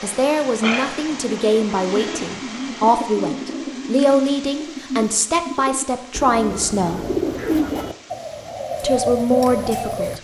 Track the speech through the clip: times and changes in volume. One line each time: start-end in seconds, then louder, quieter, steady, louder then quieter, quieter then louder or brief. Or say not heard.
0.0-7.0 steady
8.8-10.1 brief.